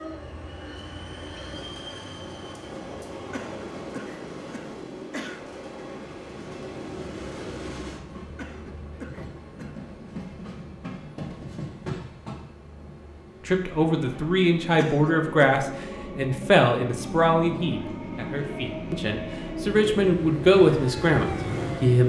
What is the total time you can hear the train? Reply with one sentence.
You can hear the train for 22 seconds altogether.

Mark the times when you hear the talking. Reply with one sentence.
The talking can be heard from 13.4 to 22.0 s.